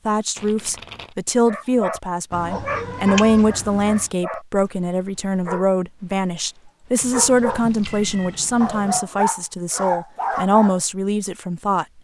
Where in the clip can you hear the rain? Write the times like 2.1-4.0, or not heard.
not heard.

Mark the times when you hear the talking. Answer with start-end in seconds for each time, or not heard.
0.1-11.8.